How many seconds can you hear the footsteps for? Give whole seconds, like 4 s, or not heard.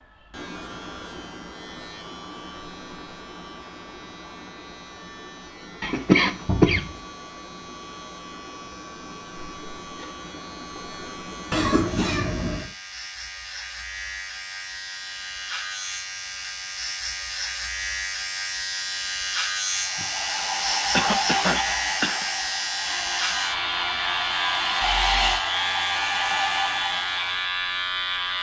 not heard.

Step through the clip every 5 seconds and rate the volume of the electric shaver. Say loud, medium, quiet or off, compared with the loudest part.
quiet, quiet, medium, loud, loud, loud.